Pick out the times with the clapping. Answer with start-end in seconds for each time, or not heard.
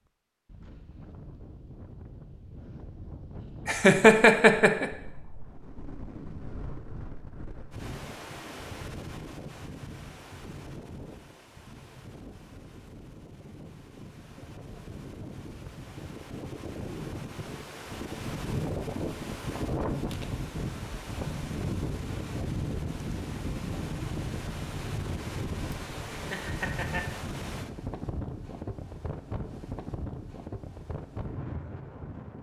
not heard.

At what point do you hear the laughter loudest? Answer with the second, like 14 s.
4 s.